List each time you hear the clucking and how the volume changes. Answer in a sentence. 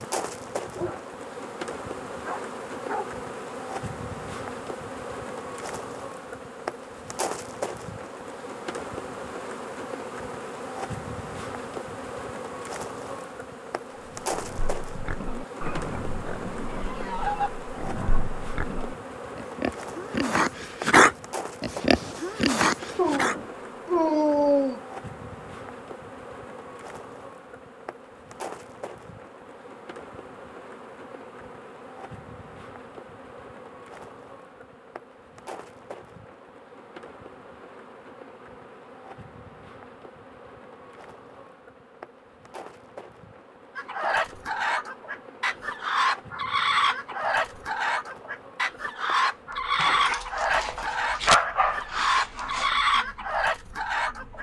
The clucking can be heard from 43.8 to 54.3 s, at a steady volume.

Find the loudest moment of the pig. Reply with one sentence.
The loudest moment of the pig is at 21 seconds.